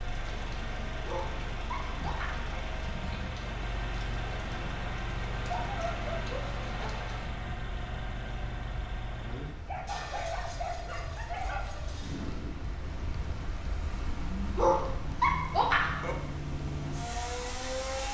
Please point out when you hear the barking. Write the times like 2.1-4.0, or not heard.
1.1-2.5, 5.5-7.0, 9.7-11.7, 14.6-16.1.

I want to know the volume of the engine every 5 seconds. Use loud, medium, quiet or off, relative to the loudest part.
loud, loud, medium, loud.